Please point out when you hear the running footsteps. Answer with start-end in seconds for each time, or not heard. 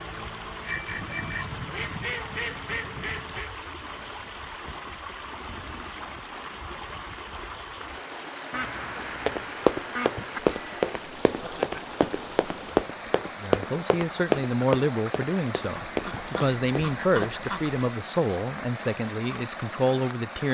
9.0-17.3.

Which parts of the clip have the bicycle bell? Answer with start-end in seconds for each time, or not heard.
0.7-1.6, 10.2-10.9, 16.1-18.0.